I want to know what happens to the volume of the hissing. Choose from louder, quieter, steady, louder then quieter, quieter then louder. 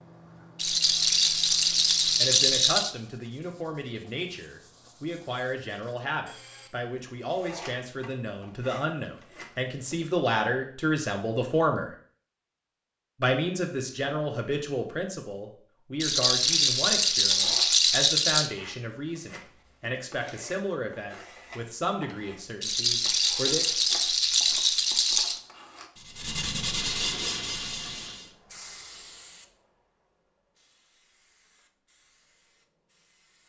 quieter.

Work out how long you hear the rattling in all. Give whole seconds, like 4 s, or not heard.
8 s.